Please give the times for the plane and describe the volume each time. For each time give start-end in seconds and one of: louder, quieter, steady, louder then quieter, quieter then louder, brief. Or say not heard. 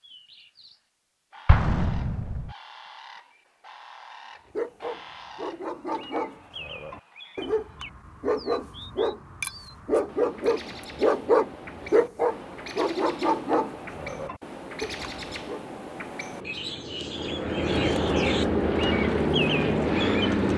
16.4-20.5 louder.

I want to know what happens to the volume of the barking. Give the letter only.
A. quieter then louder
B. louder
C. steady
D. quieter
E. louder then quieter
E.